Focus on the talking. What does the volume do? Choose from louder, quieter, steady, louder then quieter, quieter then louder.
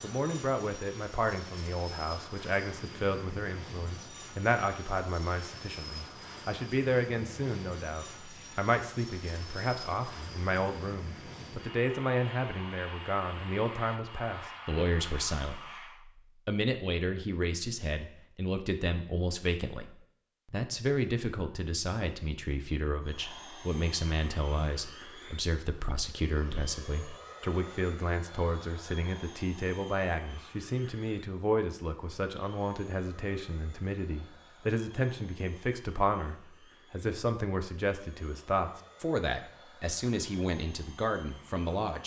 steady.